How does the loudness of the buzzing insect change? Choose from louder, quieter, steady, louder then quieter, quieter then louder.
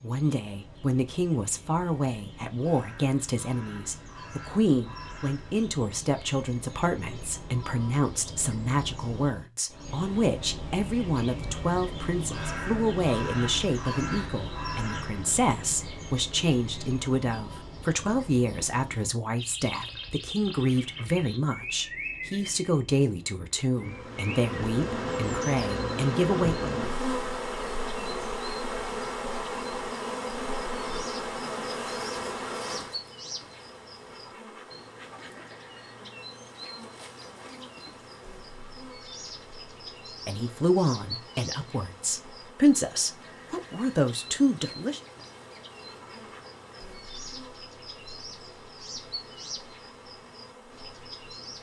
quieter.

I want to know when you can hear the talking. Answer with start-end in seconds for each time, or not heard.
0.0-26.8, 40.2-45.0.